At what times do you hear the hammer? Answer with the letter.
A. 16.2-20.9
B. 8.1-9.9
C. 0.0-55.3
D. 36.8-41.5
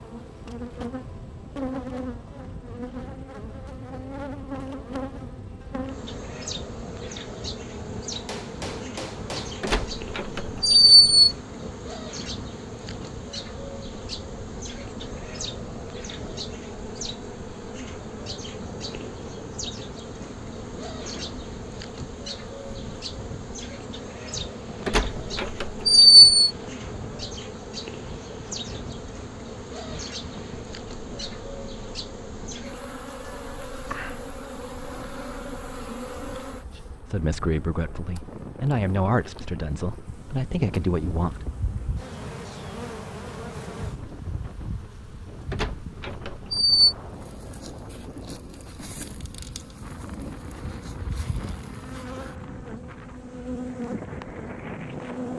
B.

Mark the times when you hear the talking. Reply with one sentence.
You can hear the talking from 36.8 to 41.5 s.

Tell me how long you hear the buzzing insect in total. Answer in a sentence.
The buzzing insect can be heard for 55 seconds in total.